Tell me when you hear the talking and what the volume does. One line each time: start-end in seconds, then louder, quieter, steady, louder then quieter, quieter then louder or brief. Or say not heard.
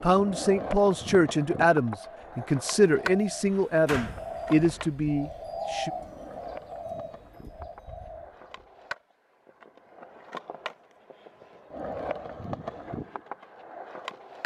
0.0-5.9 steady.